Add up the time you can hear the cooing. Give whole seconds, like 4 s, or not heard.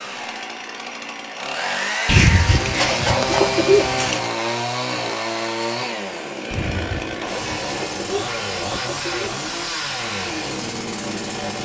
5 s.